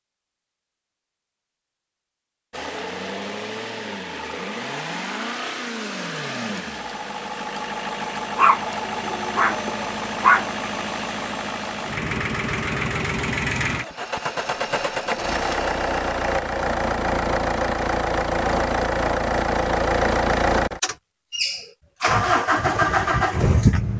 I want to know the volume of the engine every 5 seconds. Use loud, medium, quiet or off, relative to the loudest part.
medium, medium, medium, loud, loud.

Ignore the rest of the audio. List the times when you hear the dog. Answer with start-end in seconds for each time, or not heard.
8.3-10.4.